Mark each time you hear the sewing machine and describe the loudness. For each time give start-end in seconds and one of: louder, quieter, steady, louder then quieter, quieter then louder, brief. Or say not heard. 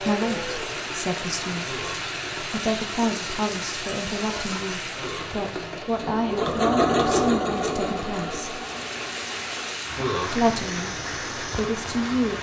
0.0-12.3 louder then quieter.